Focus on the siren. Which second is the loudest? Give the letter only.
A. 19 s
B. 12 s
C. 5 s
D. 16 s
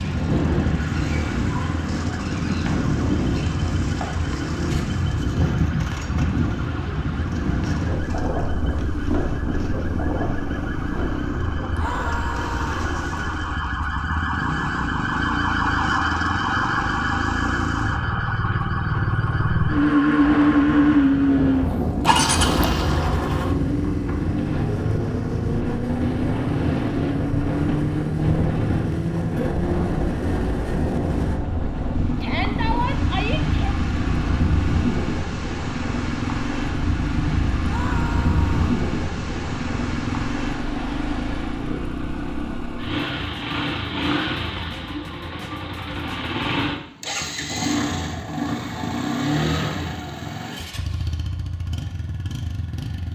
D.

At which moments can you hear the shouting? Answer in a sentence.
The shouting can be heard from 11.7 to 12.7 s, from 32.2 to 33.8 s and from 37.6 to 38.8 s.